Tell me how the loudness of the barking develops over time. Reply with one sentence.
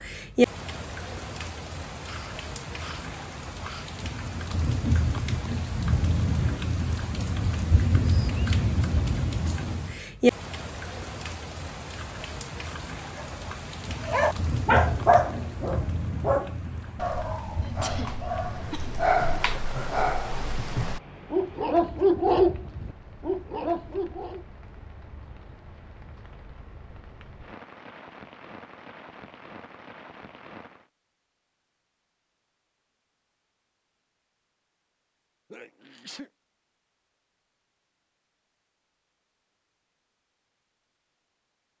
The loudness of the barking goes down, then up.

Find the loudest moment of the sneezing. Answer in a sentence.
The loudest moment of the sneezing is at 18 seconds.